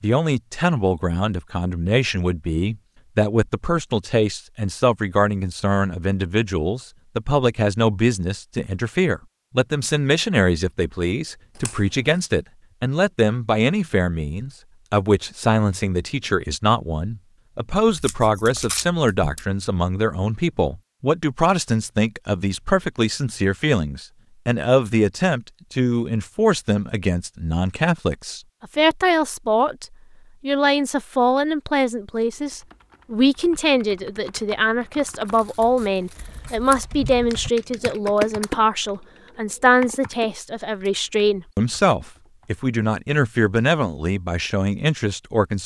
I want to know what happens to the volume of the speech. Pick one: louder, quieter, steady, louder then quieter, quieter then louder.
steady.